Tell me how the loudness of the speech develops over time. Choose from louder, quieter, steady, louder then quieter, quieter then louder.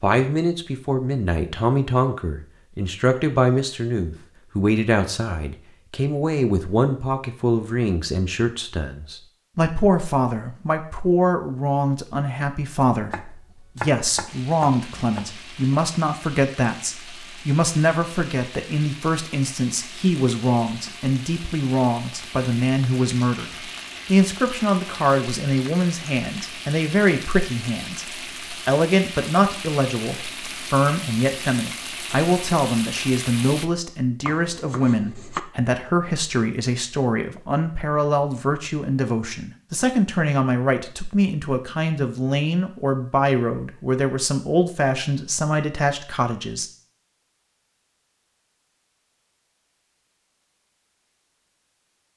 steady.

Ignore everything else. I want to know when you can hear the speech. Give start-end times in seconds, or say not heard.
0.0-46.7.